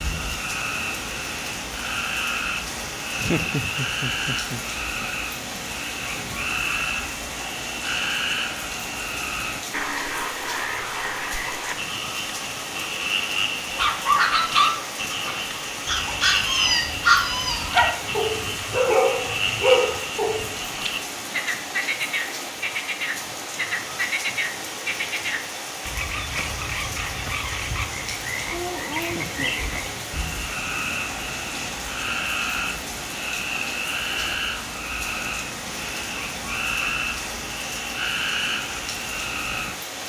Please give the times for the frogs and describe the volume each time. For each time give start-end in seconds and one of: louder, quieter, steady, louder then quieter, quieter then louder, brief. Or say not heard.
0.0-40.0 steady.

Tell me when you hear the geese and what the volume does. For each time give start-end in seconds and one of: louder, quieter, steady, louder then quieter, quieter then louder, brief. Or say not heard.
not heard.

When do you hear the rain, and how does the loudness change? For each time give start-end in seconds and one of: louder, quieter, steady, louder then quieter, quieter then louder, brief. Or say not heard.
0.0-40.0 steady.